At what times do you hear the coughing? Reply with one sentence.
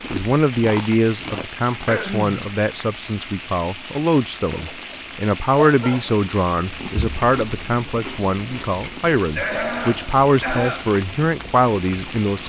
The coughing can be heard from 1.9 to 2.4 s, from 4.5 to 6.2 s and from 8.9 to 10.9 s.